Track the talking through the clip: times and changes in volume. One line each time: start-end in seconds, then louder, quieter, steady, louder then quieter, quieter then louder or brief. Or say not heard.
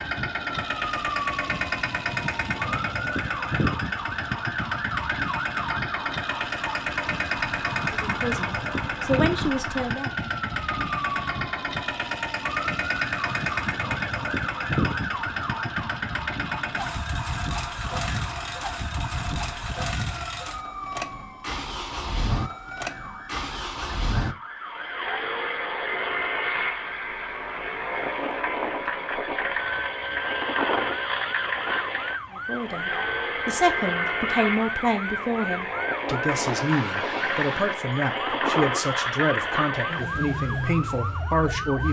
8.0-10.1 brief
32.4-41.8 steady.